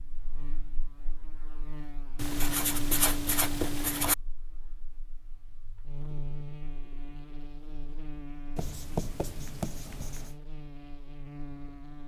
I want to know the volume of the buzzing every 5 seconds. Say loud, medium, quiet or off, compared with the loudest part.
medium, loud, loud.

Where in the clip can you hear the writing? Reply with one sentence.
The writing can be heard from 2.1 to 4.2 s and from 8.6 to 10.3 s.